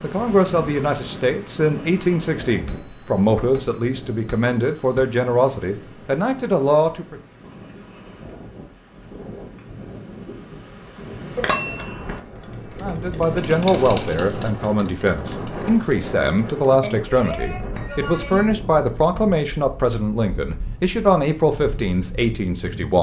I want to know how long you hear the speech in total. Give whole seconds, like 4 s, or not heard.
17 s.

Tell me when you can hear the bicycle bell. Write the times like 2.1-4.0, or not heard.
2.6-5.1, 11.3-12.2, 16.8-18.5.